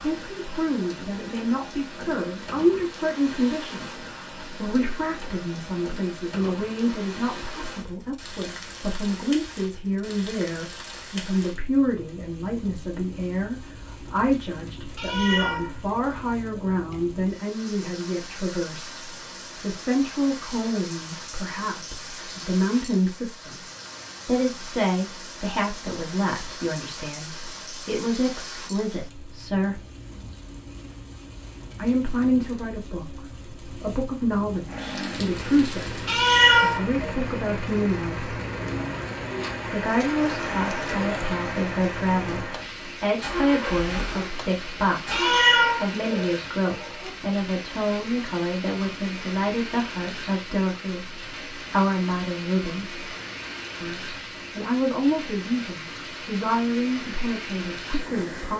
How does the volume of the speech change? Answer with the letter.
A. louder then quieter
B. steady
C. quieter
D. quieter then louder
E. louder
B.